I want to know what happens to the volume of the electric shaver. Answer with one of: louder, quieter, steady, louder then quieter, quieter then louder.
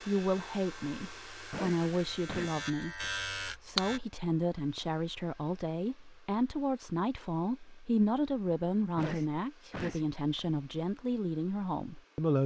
louder.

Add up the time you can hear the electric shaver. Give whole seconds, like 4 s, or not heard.
4 s.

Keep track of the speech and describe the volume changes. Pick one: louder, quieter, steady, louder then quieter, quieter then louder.
steady.